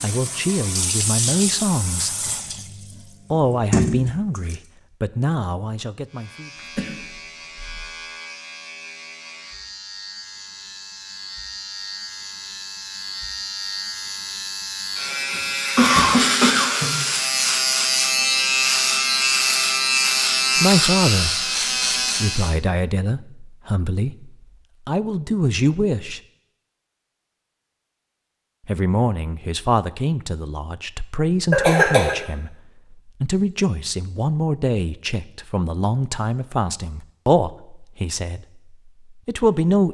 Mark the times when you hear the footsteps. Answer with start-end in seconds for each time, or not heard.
not heard.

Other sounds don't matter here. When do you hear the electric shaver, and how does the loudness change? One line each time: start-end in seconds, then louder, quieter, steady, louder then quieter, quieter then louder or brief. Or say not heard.
6.0-22.6 louder.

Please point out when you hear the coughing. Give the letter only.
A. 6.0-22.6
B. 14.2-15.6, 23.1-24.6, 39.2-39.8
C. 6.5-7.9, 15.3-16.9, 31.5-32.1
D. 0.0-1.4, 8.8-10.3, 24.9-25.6
C.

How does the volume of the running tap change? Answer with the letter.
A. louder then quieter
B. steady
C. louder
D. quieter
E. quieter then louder
E.